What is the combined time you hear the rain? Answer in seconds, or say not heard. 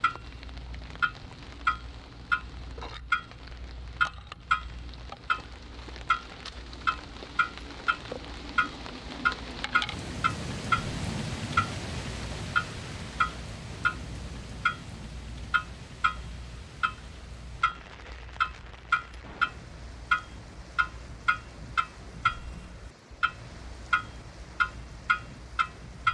26 s.